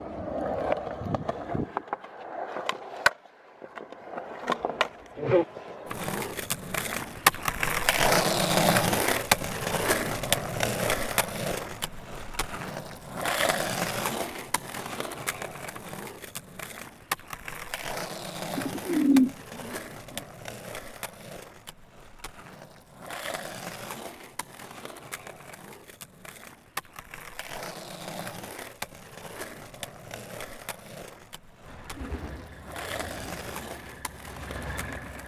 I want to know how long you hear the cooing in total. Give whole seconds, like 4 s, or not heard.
4 s.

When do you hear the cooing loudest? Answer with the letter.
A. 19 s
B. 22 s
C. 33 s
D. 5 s
A.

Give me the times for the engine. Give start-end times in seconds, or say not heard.
31.6-35.2.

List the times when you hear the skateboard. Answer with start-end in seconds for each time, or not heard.
0.0-35.2.